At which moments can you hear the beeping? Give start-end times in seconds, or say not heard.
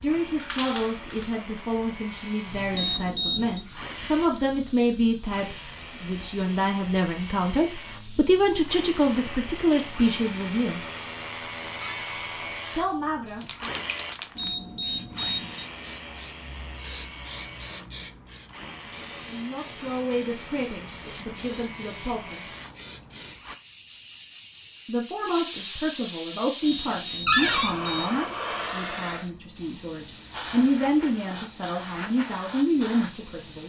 2.7-3.6, 14.3-15.7, 26.6-28.2.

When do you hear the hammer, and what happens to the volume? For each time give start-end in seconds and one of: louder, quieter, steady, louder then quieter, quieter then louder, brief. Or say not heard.
not heard.